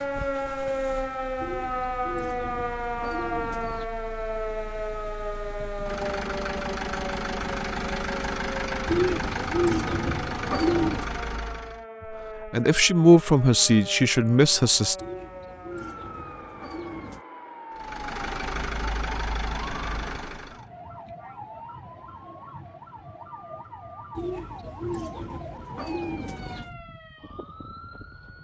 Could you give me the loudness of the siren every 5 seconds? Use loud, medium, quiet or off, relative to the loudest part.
loud, medium, medium, medium, quiet, quiet.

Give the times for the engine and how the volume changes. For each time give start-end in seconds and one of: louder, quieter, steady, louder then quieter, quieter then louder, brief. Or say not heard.
0.0-11.8 louder
17.8-20.6 brief.